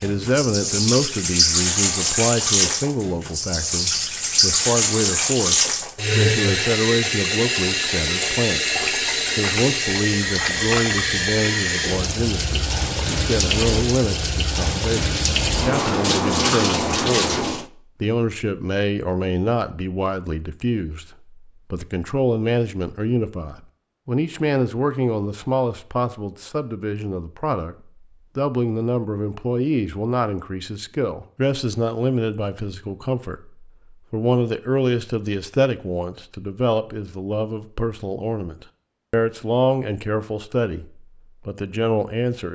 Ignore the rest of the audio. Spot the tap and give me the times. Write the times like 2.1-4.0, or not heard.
0.0-17.6.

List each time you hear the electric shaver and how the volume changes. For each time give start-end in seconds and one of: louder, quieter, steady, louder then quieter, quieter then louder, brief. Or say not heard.
not heard.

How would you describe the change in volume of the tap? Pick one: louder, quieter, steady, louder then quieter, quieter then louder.
steady.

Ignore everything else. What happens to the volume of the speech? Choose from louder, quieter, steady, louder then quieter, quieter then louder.
steady.